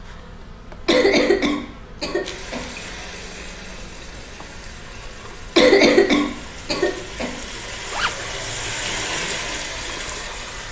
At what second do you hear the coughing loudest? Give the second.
6 s.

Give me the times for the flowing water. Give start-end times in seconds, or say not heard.
2.2-10.6.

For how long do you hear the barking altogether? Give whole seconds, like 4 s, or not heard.
not heard.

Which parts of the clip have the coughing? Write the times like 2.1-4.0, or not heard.
0.8-2.6, 5.5-7.3.